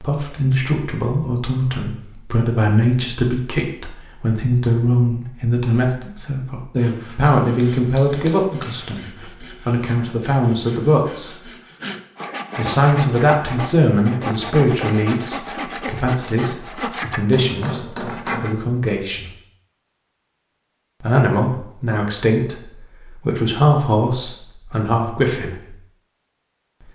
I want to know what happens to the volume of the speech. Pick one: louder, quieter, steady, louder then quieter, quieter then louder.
steady.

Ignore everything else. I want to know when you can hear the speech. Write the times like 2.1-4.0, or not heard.
0.0-11.4, 12.6-19.3, 21.0-25.7.